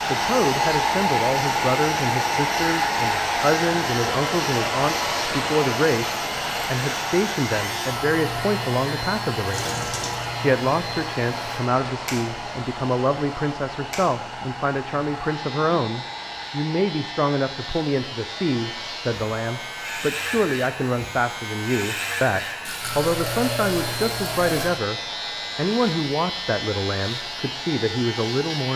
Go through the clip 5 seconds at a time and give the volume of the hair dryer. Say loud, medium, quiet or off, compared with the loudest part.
loud, medium, medium, quiet, quiet, quiet.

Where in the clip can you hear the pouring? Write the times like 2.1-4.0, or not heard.
9.5-10.3, 22.6-24.6.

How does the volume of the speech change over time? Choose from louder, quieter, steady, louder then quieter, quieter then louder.
steady.